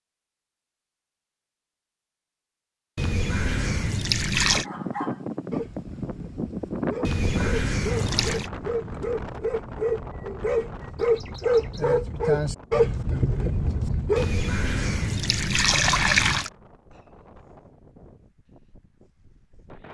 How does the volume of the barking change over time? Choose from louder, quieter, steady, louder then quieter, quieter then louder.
louder.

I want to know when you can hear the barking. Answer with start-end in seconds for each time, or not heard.
4.6-14.2.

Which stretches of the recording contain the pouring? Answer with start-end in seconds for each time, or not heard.
3.0-4.7, 7.0-8.5, 14.2-16.5.